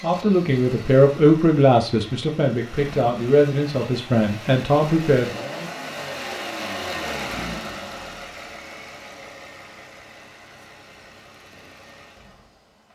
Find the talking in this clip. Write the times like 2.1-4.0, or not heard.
0.0-5.3.